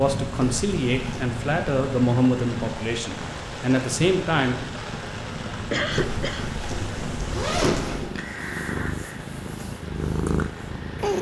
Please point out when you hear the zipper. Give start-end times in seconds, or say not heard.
0.3-1.3, 5.9-8.1.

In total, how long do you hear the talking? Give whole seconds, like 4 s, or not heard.
5 s.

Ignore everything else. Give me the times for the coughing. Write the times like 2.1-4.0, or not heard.
5.7-6.5.